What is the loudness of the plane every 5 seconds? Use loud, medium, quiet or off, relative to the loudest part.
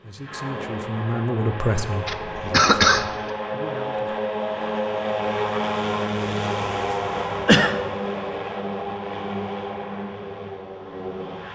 loud, loud, medium.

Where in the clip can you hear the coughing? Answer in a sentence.
The coughing can be heard from 2.0 to 3.1 s and from 6.7 to 7.8 s.